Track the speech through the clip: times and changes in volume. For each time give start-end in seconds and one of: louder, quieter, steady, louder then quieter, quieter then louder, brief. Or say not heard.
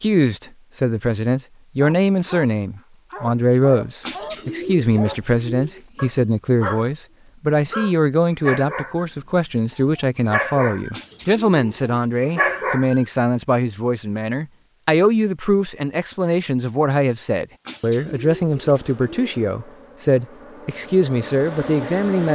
0.0-22.2 steady.